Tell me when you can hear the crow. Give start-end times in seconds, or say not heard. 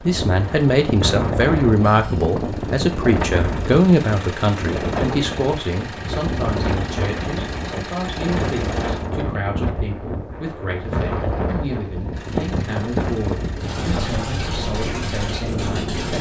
not heard.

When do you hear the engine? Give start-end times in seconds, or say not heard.
0.0-9.1, 10.9-16.1.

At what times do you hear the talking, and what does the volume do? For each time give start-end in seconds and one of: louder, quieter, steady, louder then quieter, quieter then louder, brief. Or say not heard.
0.1-16.1 quieter.